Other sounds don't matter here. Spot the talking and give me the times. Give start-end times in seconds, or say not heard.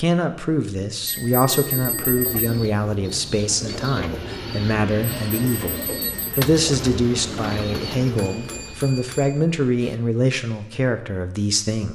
0.0-11.9.